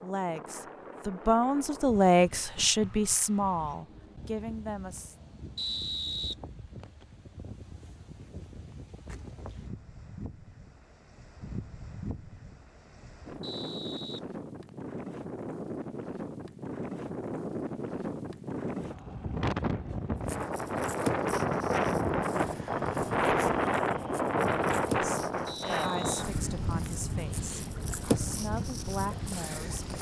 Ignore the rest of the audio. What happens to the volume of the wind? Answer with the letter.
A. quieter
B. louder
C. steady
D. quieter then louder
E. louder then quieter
B.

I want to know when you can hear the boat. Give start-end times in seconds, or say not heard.
20.1-29.9.